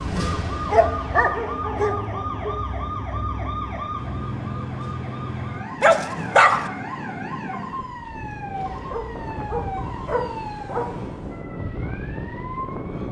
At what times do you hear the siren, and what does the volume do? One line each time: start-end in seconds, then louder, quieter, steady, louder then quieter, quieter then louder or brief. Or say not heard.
0.0-13.0 quieter.